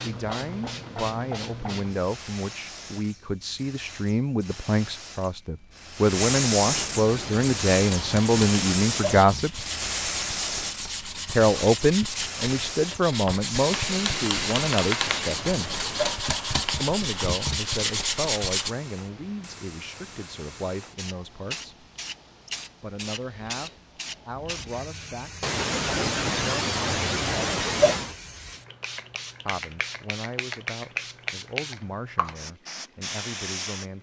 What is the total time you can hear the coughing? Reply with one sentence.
The coughing can be heard for 8 seconds in total.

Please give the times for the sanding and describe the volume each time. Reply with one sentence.
The sanding can be heard from 7.0 to 18.8 s, getting louder.